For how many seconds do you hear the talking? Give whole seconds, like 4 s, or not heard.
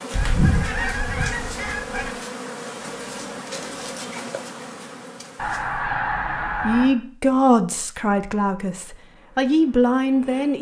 4 s.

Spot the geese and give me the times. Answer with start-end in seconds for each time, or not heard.
0.1-2.1, 5.3-7.0.